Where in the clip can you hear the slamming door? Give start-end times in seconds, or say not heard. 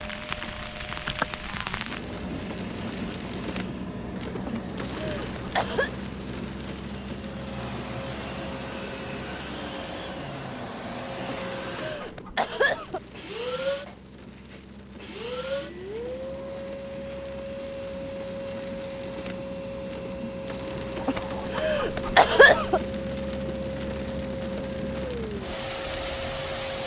not heard.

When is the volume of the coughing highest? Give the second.
22 s.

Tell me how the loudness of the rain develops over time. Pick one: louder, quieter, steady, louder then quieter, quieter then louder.
quieter then louder.